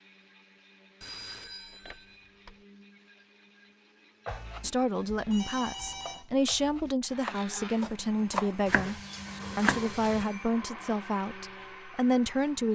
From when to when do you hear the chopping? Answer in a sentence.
You can hear the chopping from 4.2 to 10.2 s.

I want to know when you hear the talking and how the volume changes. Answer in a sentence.
The talking can be heard from 4.6 to 12.7 s, at a steady volume.